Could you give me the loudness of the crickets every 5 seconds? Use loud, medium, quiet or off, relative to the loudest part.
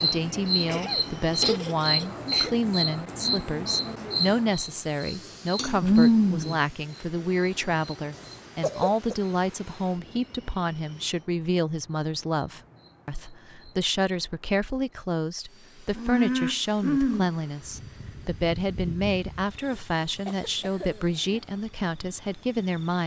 loud, loud, quiet, medium, quiet.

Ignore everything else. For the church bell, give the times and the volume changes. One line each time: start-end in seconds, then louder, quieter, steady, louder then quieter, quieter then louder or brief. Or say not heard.
not heard.